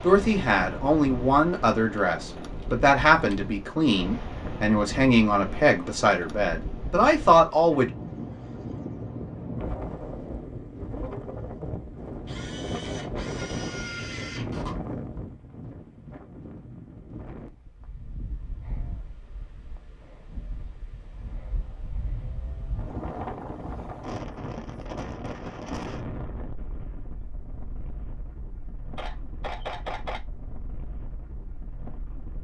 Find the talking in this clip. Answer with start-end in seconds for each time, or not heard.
0.0-7.8.